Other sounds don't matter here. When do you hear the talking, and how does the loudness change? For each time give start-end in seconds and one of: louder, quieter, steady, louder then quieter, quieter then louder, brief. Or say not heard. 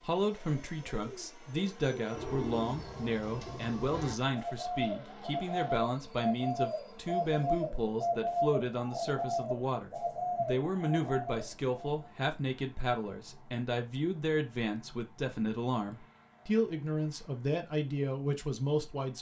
0.0-19.1 steady.